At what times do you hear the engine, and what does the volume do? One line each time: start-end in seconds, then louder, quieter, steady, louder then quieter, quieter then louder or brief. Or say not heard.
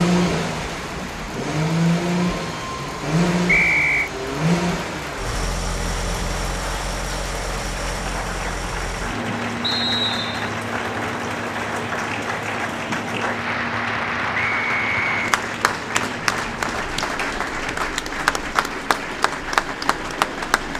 0.0-20.7 quieter.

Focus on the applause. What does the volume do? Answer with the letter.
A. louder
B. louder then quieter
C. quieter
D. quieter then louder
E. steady
A.